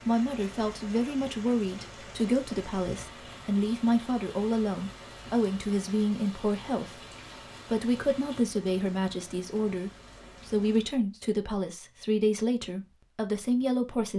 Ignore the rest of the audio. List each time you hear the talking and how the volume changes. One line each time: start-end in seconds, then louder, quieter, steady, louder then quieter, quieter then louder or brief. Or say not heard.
0.0-14.1 steady.